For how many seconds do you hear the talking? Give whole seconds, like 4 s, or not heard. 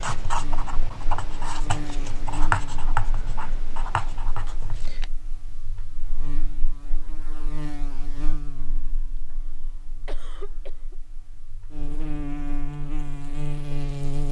not heard.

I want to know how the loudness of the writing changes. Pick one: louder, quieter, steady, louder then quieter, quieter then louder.
louder then quieter.